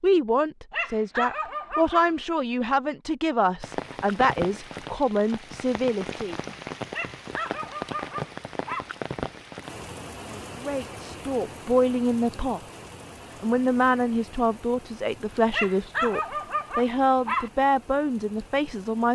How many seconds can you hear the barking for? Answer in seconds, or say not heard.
5 s.